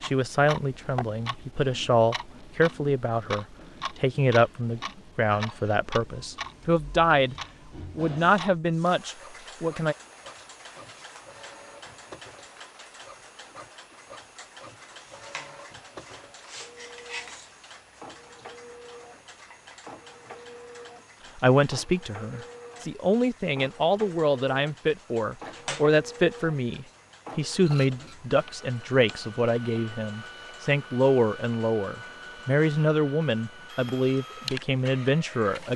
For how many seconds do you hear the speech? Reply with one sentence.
You can hear the speech for 24 seconds altogether.